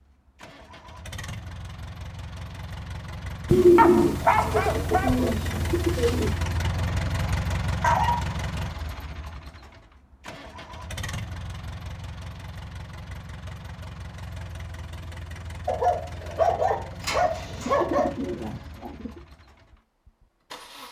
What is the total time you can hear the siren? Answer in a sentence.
The siren can't be heard in this clip.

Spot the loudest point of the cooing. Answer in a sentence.
The loudest moment of the cooing is at 4 seconds.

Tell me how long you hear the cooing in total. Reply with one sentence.
The cooing can be heard for 5 seconds in total.